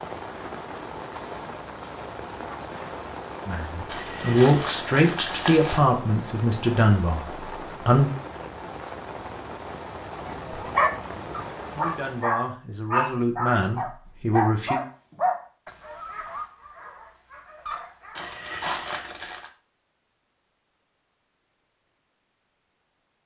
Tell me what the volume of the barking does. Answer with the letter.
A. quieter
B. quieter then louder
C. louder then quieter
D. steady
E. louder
A.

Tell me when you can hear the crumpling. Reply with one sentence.
The crumpling can be heard from 3.9 to 5.8 s and from 18.1 to 19.5 s.